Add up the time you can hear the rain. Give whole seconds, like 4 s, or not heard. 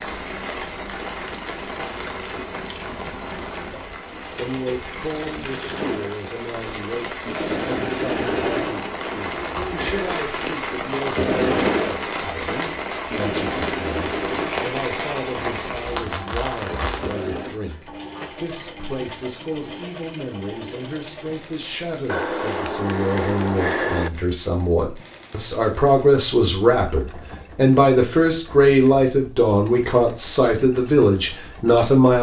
17 s.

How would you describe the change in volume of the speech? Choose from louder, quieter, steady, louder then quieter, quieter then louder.
louder.